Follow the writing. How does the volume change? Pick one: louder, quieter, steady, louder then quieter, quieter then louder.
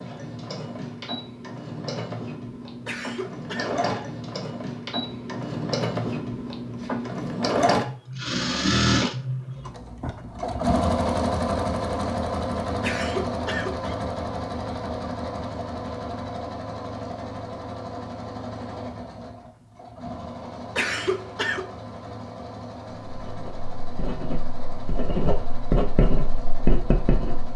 louder.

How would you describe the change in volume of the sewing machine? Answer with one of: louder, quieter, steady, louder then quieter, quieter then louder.
louder then quieter.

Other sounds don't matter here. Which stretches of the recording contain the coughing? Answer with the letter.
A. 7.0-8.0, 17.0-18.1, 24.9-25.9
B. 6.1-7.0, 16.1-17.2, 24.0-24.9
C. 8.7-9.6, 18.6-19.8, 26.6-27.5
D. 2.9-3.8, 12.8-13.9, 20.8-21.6
D.